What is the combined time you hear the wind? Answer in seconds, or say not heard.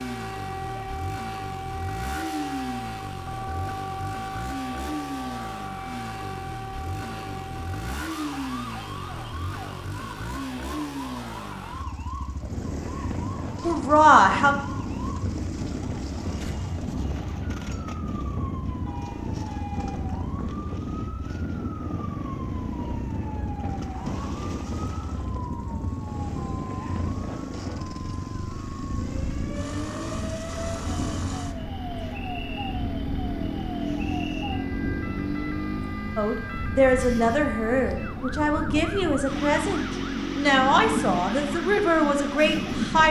31 s.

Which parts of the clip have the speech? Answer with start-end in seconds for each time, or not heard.
13.6-14.6, 36.1-43.0.